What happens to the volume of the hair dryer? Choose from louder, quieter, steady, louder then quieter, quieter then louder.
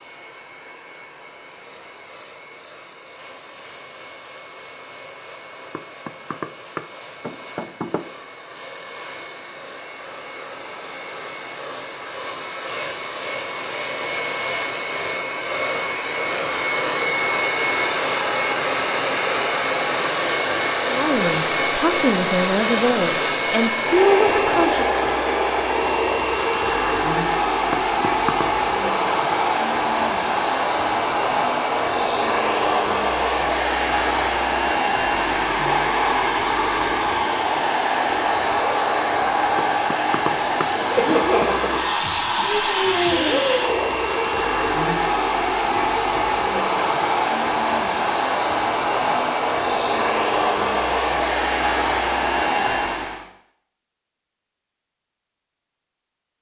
louder.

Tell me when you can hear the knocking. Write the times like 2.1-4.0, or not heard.
5.7-8.1, 27.7-28.5, 39.5-41.5.